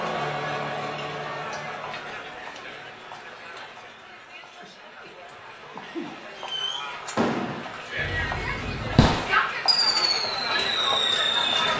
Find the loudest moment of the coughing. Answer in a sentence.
The volume of the coughing peaks at 6 seconds.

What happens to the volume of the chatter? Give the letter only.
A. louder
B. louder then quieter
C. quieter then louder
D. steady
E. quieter
C.